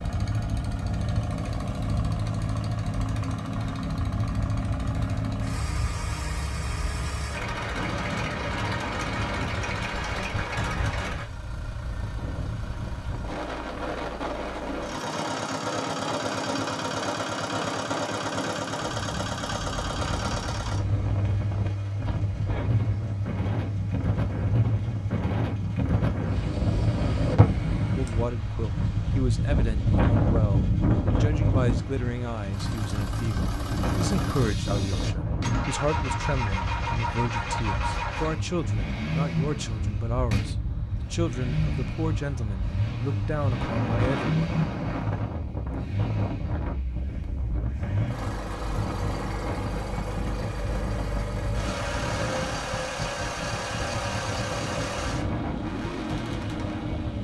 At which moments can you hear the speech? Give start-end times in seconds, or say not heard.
27.9-44.5.